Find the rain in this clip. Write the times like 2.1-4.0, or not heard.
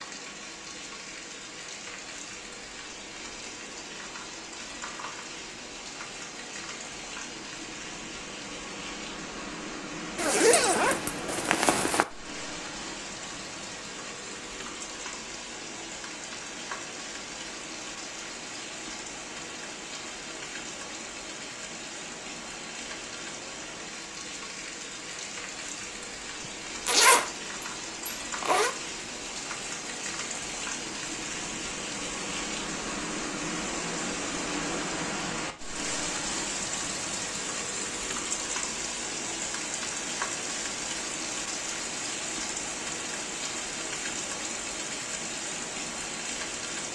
0.0-46.9.